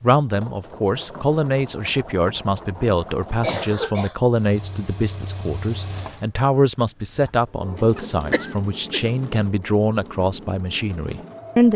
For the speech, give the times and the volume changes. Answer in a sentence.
The speech can be heard from 0.0 to 11.7 s, at a steady volume.